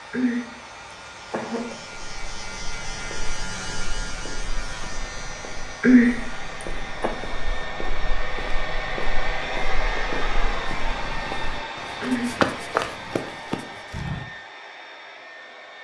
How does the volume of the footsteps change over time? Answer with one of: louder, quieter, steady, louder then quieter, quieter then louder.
louder.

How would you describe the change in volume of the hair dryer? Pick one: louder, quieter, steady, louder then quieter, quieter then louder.
louder then quieter.